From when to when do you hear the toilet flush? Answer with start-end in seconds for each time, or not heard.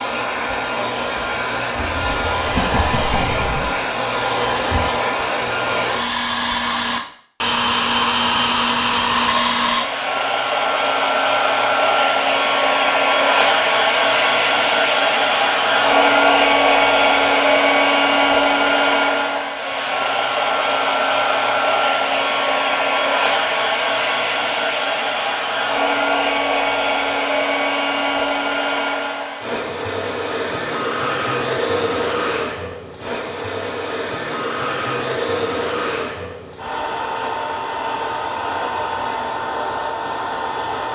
1.8-3.8.